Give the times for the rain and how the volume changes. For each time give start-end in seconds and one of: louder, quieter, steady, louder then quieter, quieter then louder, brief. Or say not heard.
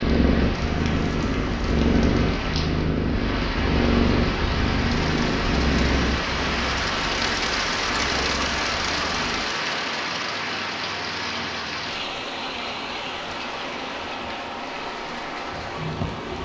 0.0-16.4 louder then quieter.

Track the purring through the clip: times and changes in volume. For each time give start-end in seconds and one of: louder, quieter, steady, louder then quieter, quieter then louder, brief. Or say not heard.
0.0-9.4 quieter.